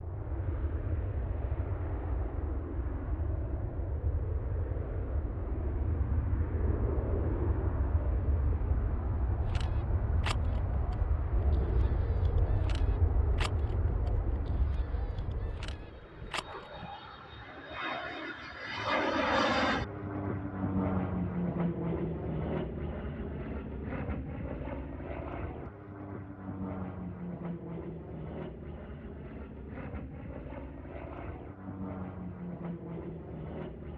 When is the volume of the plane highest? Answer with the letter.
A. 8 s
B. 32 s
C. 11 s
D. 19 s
D.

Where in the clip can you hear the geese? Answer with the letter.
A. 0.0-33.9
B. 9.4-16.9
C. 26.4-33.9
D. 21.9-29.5
B.